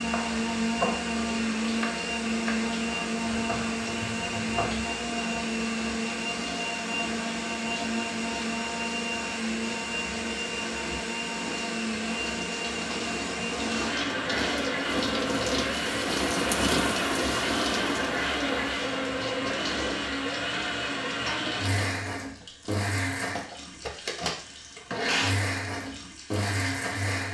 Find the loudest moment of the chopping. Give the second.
1 s.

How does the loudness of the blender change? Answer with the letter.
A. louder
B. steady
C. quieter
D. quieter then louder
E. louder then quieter
B.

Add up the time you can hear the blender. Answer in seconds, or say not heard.
27 s.